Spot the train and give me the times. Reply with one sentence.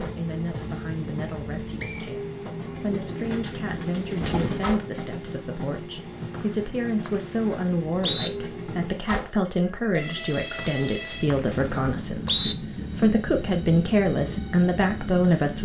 You can hear the train from 0.0 to 15.6 s.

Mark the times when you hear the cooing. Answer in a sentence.
You can hear the cooing from 2.6 to 4.7 s and from 9.9 to 11.9 s.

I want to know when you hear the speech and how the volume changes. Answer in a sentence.
The speech can be heard from 0.0 to 15.6 s, getting louder.